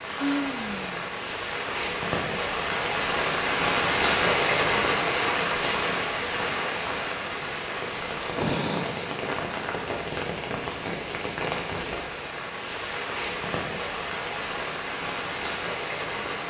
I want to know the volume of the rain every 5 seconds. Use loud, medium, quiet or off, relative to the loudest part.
loud, loud, medium, medium.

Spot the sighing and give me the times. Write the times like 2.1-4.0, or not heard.
0.1-1.0, 8.3-9.2.